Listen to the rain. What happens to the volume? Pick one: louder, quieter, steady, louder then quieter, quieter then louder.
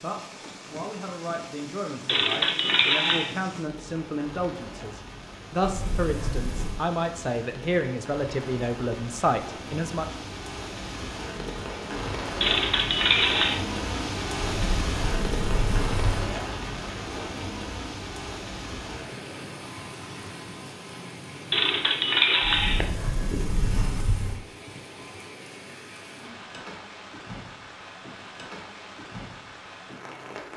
louder then quieter.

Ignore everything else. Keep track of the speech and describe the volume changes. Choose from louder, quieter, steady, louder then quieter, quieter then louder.
louder.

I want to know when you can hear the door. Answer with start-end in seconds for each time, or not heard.
5.6-6.8, 14.4-16.3, 22.4-24.4.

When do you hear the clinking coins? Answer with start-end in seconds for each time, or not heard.
2.0-3.3, 12.4-13.6, 21.5-22.9.